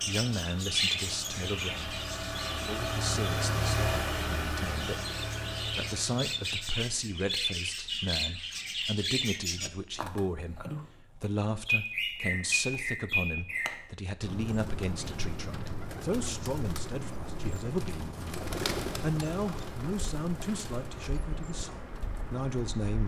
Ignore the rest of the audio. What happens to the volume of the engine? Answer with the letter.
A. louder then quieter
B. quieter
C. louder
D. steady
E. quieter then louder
A.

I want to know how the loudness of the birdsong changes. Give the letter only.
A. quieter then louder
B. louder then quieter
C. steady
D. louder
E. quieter
E.